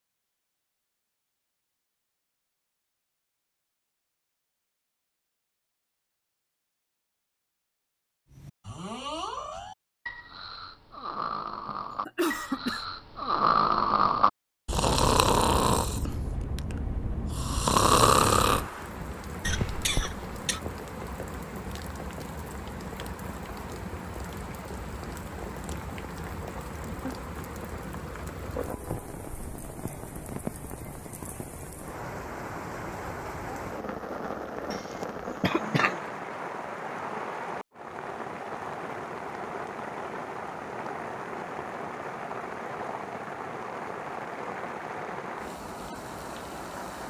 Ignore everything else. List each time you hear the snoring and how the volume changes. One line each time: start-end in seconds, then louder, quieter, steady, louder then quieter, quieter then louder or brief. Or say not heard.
8.3-18.7 louder.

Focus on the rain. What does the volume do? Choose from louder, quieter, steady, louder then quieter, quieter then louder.
steady.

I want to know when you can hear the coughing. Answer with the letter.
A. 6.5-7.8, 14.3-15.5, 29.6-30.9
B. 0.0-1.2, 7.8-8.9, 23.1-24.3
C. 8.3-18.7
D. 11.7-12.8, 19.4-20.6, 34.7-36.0
D.